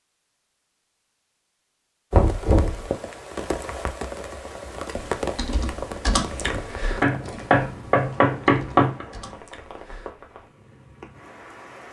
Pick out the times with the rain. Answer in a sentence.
The rain can be heard from 2.1 to 11.8 s.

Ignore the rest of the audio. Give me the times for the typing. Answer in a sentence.
The typing can be heard from 4.9 to 10.1 s.